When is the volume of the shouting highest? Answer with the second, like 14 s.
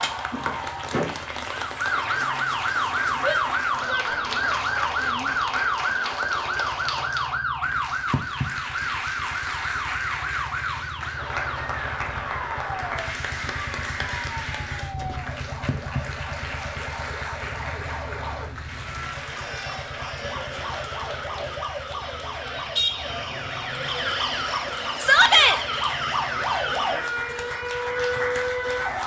25 s.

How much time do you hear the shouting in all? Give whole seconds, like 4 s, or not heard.
3 s.